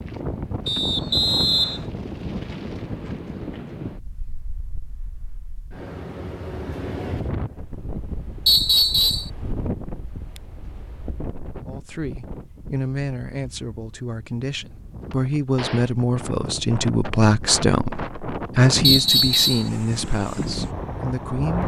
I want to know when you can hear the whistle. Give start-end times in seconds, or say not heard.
0.7-1.9, 8.4-9.3, 18.8-19.7.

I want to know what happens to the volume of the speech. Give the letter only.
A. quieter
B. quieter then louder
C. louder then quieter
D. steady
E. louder
C.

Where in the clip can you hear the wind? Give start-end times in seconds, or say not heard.
0.0-21.6.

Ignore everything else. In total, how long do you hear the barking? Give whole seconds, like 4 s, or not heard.
not heard.